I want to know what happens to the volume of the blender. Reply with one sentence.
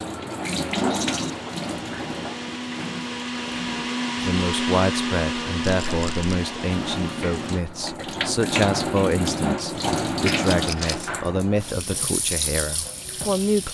The volume of the blender goes up, then down.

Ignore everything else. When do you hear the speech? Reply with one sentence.
The speech can be heard from 4.2 to 13.6 s.